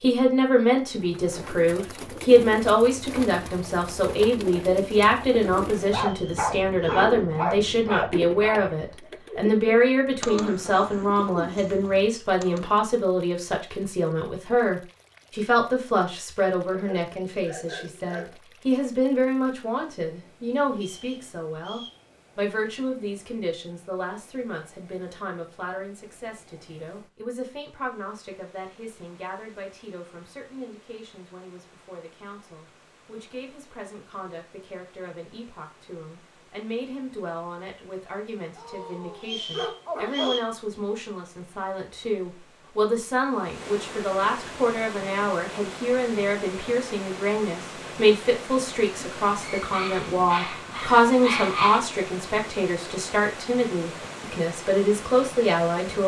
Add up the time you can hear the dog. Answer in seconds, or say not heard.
9 s.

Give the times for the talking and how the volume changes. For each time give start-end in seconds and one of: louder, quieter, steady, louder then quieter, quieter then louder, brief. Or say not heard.
0.0-56.0 quieter then louder.